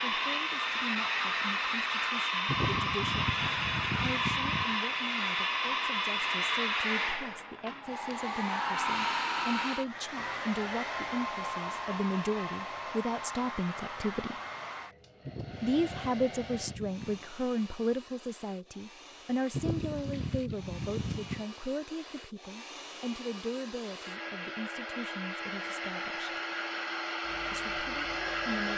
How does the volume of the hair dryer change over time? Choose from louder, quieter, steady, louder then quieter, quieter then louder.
quieter then louder.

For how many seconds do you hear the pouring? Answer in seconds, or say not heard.
6 s.